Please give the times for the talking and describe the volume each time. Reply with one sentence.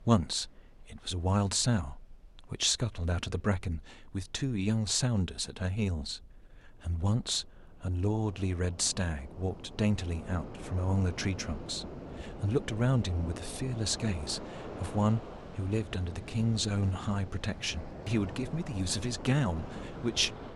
The talking can be heard from 0.0 to 20.5 s, at a steady volume.